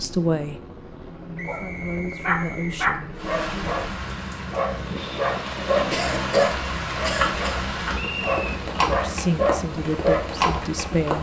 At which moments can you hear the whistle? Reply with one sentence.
The whistle can be heard from 1.4 to 2.8 s and from 8.0 to 8.4 s.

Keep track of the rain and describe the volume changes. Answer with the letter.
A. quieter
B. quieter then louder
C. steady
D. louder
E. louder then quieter
D.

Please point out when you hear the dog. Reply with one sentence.
The dog can be heard from 1.4 to 10.4 s.